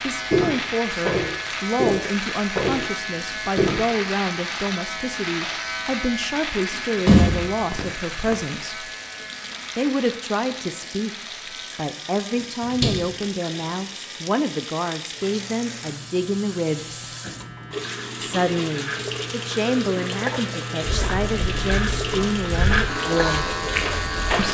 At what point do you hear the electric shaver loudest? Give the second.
23 s.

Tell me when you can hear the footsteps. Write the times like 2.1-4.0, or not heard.
0.1-3.8, 20.8-24.5.